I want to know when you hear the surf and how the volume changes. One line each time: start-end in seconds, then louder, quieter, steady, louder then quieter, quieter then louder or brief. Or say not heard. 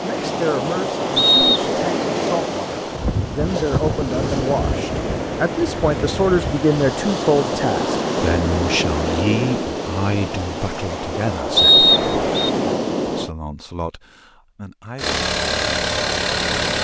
0.0-13.3 steady.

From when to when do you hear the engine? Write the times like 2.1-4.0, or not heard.
14.9-16.7.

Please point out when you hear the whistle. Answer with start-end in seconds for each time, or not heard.
1.1-1.6, 11.6-12.5.